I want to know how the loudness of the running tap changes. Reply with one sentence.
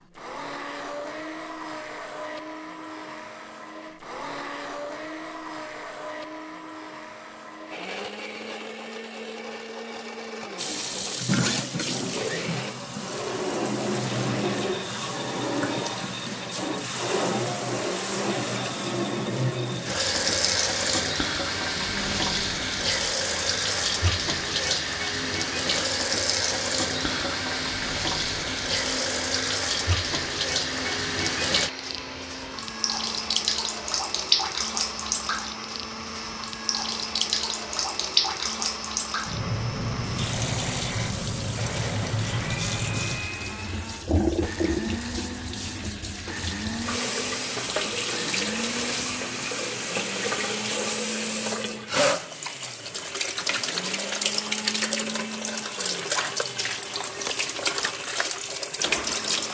The volume of the running tap stays about the same.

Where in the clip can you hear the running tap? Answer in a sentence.
You can hear the running tap from 10.6 to 59.4 s.